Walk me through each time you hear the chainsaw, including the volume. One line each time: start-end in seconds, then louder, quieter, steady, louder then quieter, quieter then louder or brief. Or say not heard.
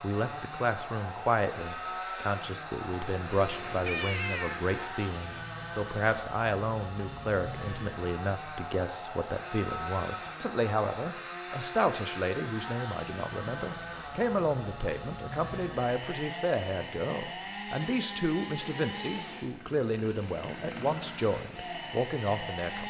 0.0-22.8 steady.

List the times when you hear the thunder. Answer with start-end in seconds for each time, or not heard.
not heard.